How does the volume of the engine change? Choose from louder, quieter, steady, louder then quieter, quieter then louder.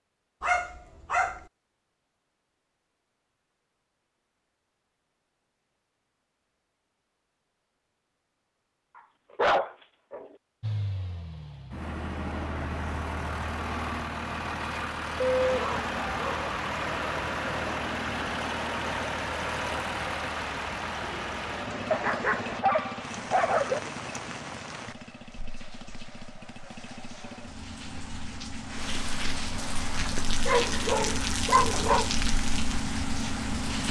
quieter then louder.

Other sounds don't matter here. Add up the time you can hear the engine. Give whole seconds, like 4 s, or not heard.
23 s.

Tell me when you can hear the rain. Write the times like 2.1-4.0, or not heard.
15.3-33.8.